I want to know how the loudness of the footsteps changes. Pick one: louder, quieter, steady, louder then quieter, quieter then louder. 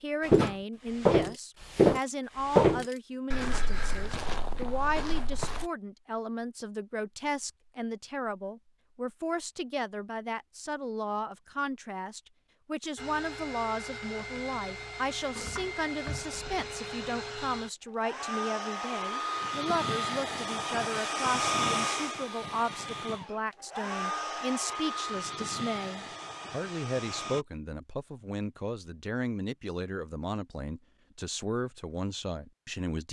quieter.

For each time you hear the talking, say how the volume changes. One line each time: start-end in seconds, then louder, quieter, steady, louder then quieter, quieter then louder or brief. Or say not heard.
0.0-33.0 steady.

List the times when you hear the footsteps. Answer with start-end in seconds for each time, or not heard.
0.2-5.7.